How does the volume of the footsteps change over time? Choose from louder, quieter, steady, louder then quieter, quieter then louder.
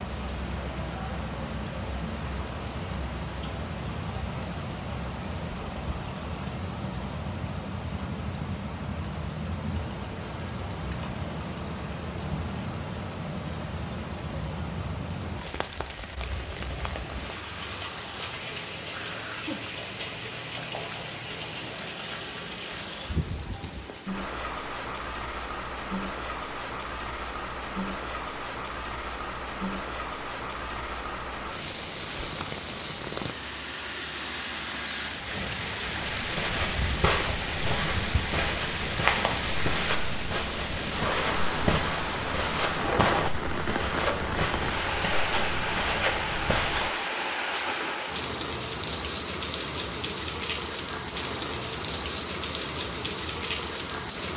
steady.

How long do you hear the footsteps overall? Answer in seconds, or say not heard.
11 s.